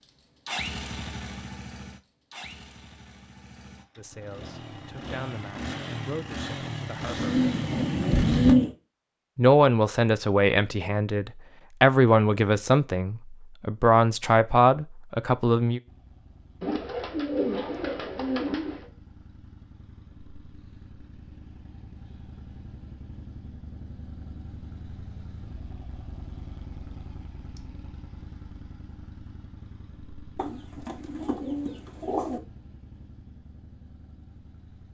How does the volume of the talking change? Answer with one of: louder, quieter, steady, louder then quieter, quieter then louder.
louder.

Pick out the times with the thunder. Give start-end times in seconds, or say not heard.
7.0-8.6.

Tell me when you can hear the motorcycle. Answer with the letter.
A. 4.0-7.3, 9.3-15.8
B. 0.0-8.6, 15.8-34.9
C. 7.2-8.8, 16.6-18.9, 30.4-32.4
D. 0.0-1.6
B.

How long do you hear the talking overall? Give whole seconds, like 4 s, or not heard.
10 s.